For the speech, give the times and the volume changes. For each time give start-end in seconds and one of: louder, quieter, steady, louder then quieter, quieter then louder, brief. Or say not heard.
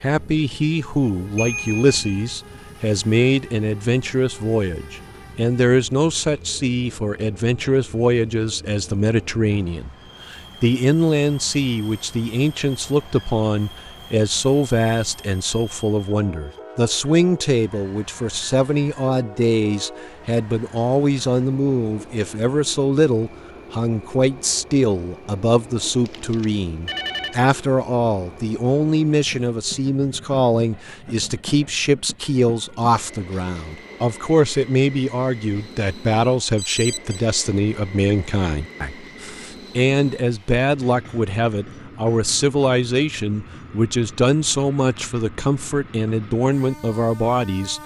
0.0-47.8 steady.